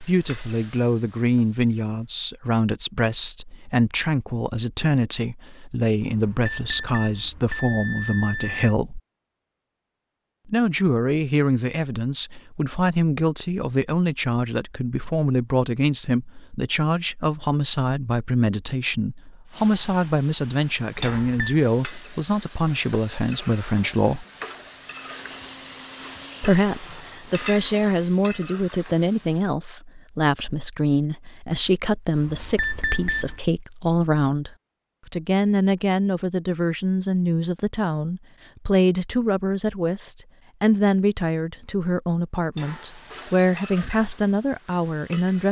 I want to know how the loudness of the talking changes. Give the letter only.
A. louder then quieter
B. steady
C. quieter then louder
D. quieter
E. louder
B.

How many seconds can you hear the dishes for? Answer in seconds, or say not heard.
not heard.